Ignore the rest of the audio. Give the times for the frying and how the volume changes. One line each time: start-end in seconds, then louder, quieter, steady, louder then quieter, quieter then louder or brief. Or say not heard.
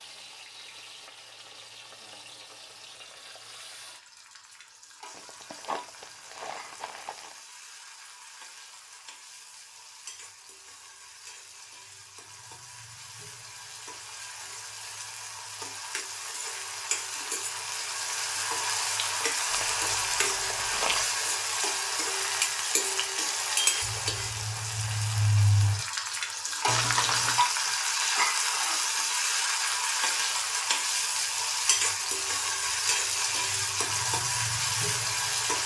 0.0-35.6 louder.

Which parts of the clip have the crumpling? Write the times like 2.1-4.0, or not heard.
5.1-7.5, 19.5-21.1, 26.6-27.4.